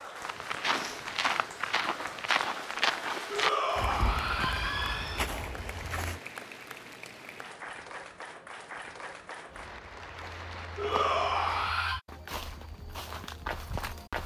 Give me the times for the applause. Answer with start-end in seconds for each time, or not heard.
0.0-11.7.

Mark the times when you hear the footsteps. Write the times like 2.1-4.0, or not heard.
0.2-6.2, 9.4-14.2.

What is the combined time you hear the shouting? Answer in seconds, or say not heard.
3 s.